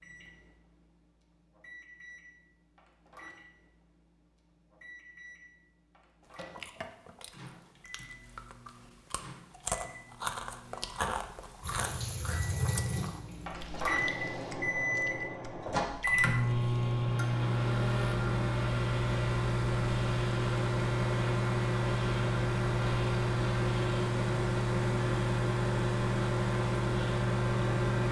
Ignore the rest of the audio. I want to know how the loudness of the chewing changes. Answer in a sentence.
The volume of the chewing goes up, then down.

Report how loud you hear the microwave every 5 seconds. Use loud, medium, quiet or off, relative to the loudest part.
quiet, quiet, medium, loud, loud, loud.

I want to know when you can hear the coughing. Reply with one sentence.
You can't hear the coughing here.